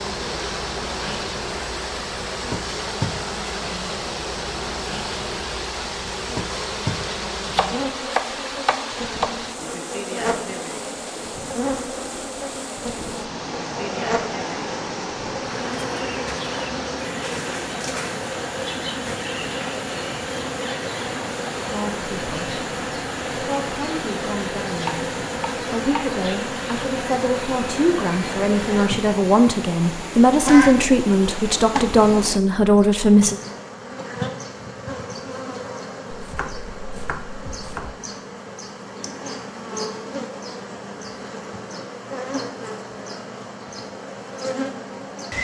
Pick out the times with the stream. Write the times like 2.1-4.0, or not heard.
0.0-32.4.